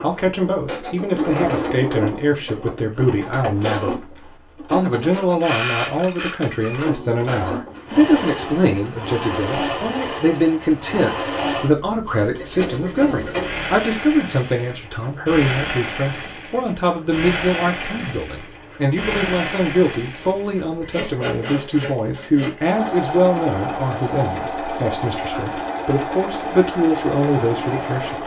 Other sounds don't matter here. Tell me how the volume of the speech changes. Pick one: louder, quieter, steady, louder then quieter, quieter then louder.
steady.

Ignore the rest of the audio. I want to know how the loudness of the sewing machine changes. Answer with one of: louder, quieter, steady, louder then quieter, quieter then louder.
steady.